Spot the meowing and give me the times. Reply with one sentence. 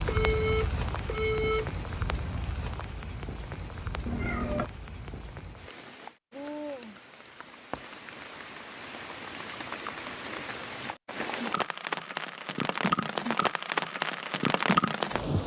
You can hear the meowing from 4.0 to 4.7 s.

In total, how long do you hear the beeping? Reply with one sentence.
The beeping can be heard for 2 seconds in total.